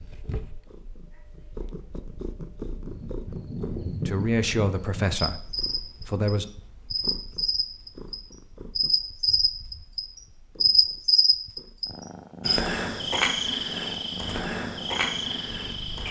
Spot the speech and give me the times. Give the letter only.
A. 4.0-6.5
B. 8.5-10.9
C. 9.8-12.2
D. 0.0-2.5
A.